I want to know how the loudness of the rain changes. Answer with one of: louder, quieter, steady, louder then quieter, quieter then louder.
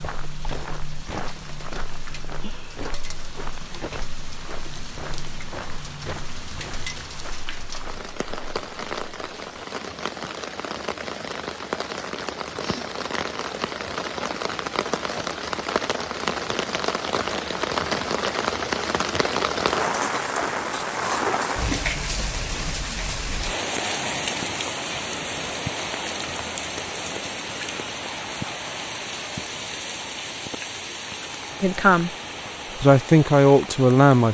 louder then quieter.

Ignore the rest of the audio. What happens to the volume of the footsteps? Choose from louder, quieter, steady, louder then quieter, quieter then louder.
quieter.